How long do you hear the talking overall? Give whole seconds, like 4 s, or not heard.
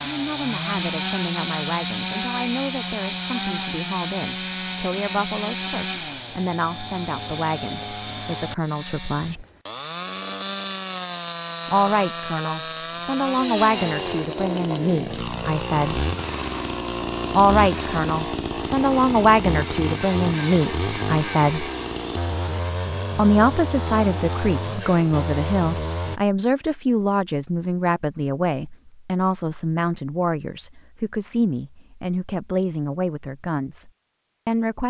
30 s.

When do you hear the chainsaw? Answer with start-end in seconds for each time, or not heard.
0.0-26.2.